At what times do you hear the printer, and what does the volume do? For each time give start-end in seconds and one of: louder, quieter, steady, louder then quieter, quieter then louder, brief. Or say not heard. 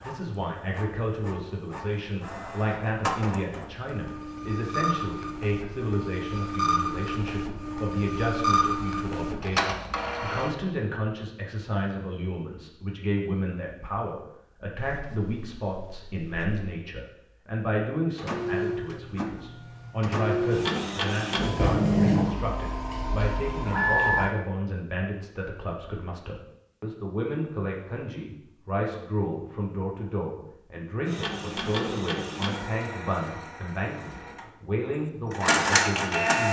0.0-10.6 louder
18.1-24.3 louder then quieter
31.1-36.4 quieter then louder.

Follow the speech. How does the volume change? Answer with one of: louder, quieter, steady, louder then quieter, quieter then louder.
steady.